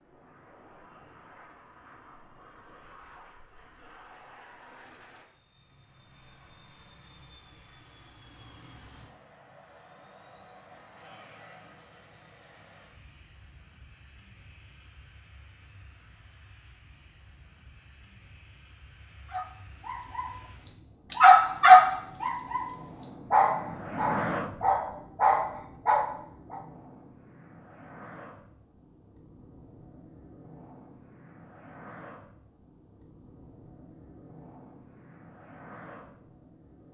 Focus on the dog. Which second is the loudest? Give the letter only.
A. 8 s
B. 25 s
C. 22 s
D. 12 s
C.